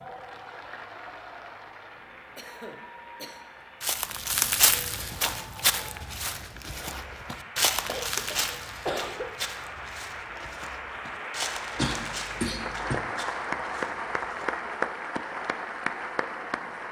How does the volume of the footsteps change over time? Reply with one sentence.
The loudness of the footsteps goes down.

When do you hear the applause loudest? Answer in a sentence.
The volume of the applause peaks at 14 seconds.